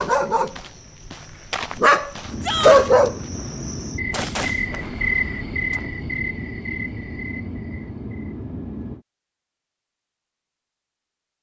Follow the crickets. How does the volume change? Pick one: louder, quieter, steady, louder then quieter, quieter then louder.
louder then quieter.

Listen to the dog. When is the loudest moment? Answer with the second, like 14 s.
3 s.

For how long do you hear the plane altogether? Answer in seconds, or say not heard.
7 s.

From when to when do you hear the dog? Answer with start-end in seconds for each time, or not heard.
0.0-3.1.